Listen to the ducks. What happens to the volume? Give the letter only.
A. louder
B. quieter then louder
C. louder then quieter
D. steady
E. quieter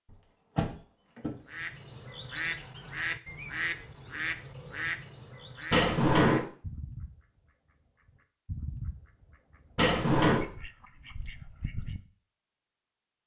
E.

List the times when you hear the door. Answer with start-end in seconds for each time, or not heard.
0.1-1.4, 5.7-6.5, 9.8-10.4.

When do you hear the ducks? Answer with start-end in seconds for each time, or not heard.
1.4-12.1.